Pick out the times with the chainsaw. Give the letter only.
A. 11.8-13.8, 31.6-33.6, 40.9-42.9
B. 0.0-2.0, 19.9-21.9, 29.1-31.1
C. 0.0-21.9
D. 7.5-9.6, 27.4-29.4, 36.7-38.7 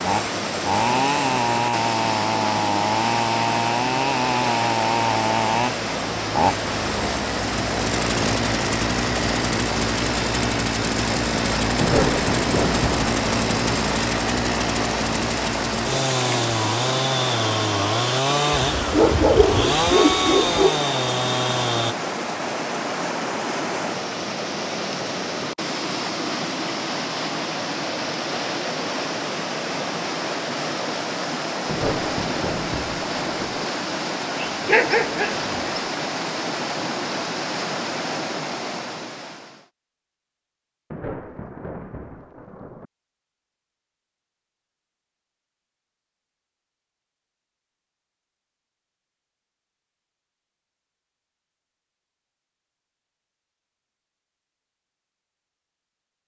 C.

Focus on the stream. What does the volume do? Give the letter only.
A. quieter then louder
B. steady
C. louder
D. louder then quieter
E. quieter
B.